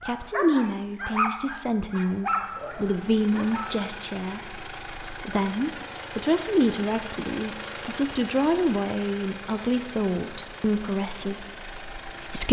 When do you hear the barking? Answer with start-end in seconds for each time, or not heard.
0.0-3.6.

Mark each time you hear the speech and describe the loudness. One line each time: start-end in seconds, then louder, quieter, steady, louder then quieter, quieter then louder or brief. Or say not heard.
0.1-12.4 steady.